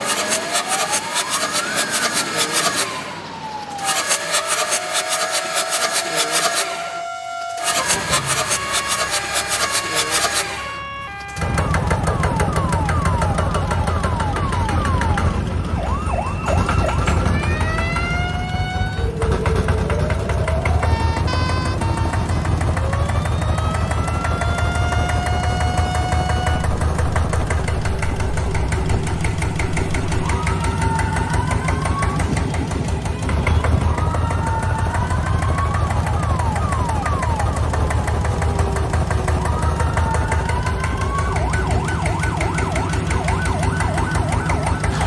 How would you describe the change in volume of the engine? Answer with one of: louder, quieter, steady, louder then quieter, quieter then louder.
steady.